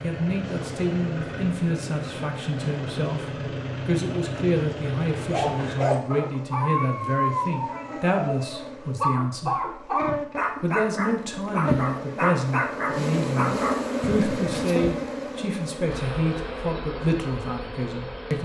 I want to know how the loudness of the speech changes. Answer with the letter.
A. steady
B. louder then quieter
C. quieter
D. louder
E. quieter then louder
A.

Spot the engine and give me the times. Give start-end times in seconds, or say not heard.
0.0-6.0.